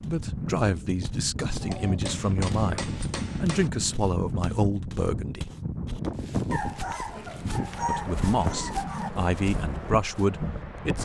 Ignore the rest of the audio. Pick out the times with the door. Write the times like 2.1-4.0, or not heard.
not heard.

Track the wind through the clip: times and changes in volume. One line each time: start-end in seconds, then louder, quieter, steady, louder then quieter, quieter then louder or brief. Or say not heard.
0.0-11.0 steady.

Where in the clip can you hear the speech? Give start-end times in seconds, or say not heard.
0.0-5.5, 7.8-11.0.